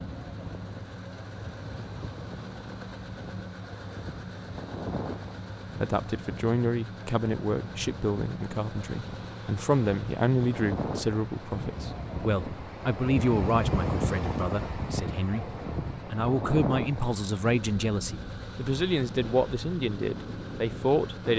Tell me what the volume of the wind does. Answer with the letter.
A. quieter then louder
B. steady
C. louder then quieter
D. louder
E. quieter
C.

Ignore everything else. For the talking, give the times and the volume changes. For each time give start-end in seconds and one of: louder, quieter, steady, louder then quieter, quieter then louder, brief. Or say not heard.
5.8-21.3 steady.